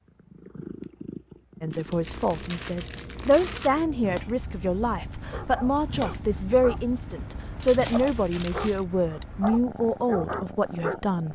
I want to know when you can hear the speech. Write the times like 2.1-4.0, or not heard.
1.6-11.2.